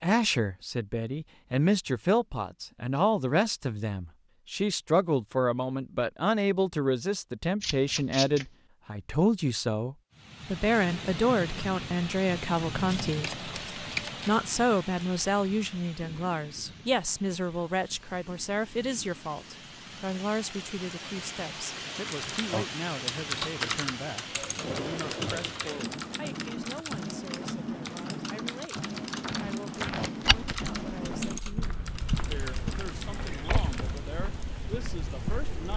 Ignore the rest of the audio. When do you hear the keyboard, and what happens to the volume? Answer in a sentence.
The keyboard can be heard from 22.1 to 34.0 s, getting quieter.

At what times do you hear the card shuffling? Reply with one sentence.
The card shuffling can be heard from 7.6 to 8.4 s, from 12.8 to 14.4 s and from 29.7 to 30.5 s.